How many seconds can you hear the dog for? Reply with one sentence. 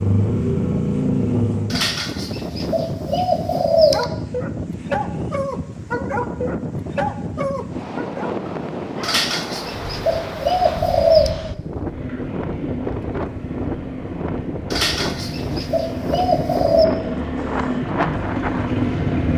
You can hear the dog for 5 seconds altogether.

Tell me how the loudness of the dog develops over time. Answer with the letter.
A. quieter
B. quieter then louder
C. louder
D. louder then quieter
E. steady
A.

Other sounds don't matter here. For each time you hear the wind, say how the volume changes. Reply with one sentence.
You can hear the wind from 0.0 to 19.3 s, at a steady volume.